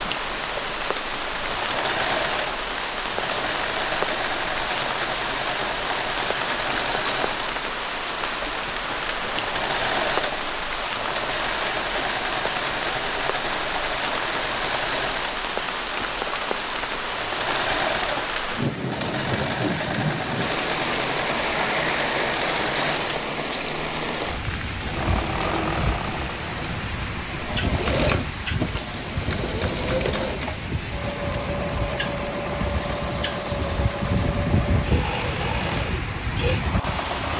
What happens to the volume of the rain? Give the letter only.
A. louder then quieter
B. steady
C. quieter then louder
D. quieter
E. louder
B.